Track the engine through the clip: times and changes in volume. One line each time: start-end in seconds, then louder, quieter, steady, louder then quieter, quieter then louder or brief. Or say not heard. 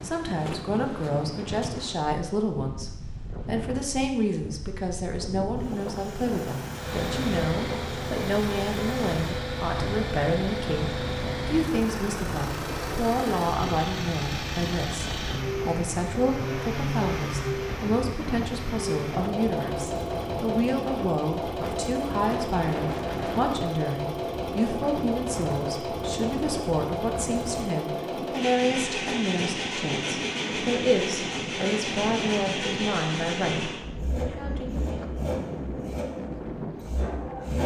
6.7-37.6 steady.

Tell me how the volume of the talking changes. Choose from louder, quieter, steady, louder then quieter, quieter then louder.
steady.